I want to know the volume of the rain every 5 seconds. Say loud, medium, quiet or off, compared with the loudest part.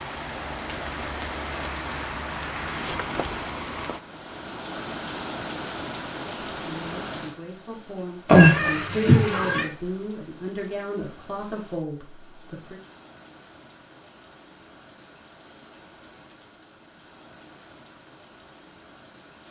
loud, loud, quiet, quiet.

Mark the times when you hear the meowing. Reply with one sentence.
The meowing can be heard from 8.2 to 9.7 s.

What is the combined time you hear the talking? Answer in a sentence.
The talking can be heard for 6 seconds in total.